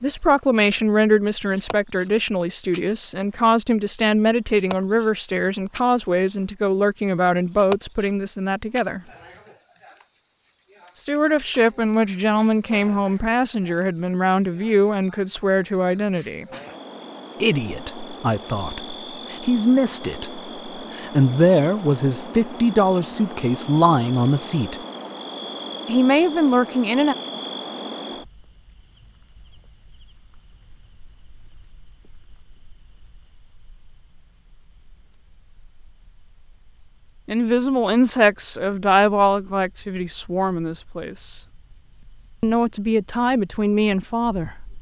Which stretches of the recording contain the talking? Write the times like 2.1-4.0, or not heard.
0.0-9.0, 10.9-16.4, 17.4-24.8, 25.9-27.1, 37.2-41.5, 42.4-44.5.